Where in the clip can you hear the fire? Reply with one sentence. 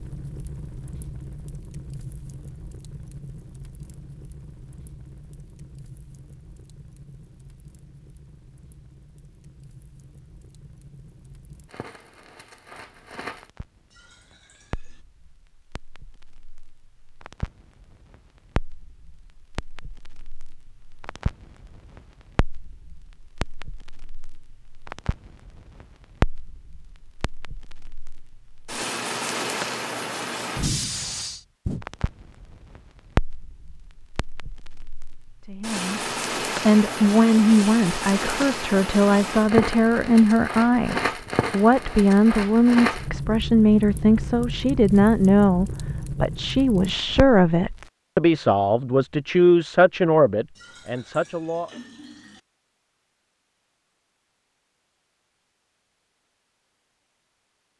You can hear the fire from 0.0 to 47.9 s.